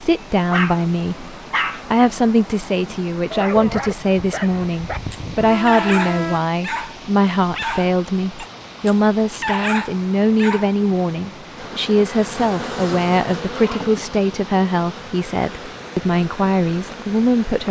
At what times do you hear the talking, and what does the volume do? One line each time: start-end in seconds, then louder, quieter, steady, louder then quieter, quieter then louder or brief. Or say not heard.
0.0-17.6 steady.